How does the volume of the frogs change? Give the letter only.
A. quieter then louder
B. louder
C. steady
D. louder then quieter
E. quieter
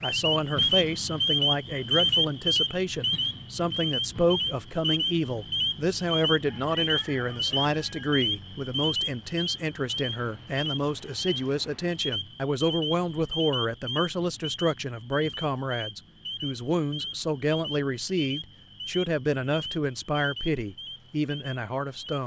E.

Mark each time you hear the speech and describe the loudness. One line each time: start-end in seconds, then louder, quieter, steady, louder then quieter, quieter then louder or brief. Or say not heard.
0.0-22.2 steady.